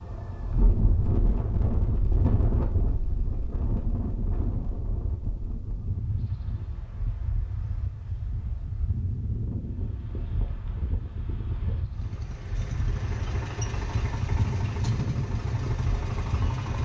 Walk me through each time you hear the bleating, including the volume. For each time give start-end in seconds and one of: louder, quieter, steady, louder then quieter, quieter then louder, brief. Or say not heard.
not heard.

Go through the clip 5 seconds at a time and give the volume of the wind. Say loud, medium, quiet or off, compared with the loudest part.
loud, medium, medium, medium.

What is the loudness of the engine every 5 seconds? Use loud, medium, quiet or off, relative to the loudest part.
off, off, loud, loud.